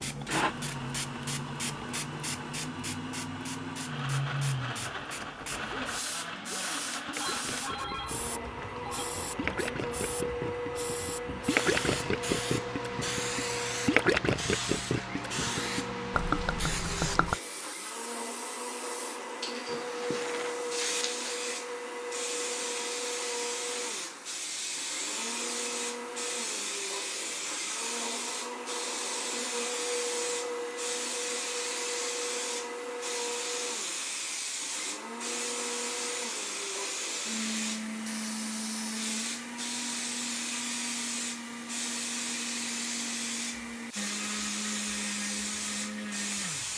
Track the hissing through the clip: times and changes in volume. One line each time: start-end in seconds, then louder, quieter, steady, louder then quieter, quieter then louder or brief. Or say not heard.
0.0-46.7 steady.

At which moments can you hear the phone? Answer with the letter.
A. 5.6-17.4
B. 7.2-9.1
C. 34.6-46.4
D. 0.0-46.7
B.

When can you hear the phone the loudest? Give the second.
8 s.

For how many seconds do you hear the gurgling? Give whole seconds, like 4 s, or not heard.
12 s.